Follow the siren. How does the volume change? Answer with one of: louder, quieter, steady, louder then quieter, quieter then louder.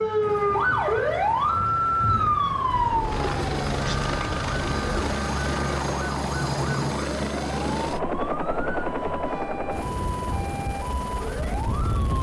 quieter.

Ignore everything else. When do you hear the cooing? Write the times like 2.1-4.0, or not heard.
2.7-5.2.